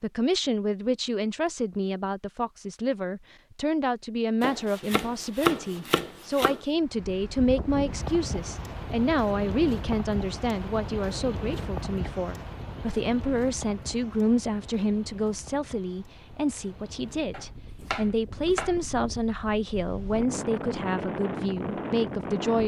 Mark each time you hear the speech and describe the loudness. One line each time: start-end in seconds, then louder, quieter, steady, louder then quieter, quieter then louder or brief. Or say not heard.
0.0-22.6 steady.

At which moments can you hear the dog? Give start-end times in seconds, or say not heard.
not heard.